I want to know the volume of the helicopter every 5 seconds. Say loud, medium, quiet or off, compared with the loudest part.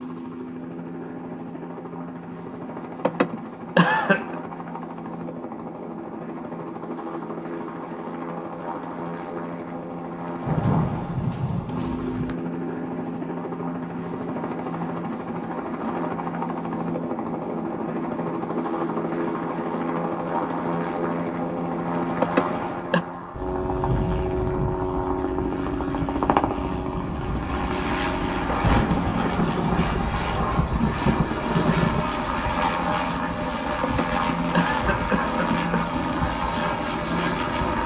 medium, medium, medium, loud, loud, loud, loud, loud.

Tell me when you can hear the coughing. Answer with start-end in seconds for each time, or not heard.
3.0-4.3, 22.2-23.0, 33.8-36.0.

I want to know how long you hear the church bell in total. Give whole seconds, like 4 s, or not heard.
not heard.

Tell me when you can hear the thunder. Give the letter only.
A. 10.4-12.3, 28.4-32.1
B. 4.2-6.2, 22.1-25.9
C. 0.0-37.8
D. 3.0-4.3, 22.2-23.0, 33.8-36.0
A.